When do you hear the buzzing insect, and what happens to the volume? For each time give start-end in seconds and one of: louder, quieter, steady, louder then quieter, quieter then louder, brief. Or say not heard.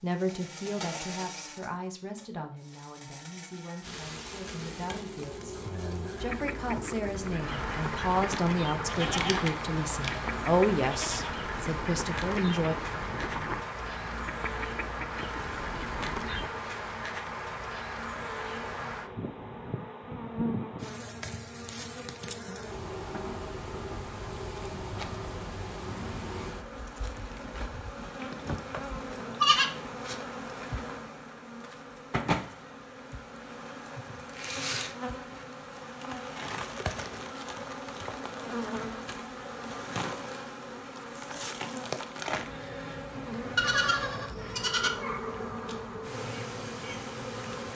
0.1-47.7 steady.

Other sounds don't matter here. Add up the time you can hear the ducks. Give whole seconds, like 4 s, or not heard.
10 s.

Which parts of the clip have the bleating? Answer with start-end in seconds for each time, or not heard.
8.8-11.3, 27.9-29.8, 43.5-44.9.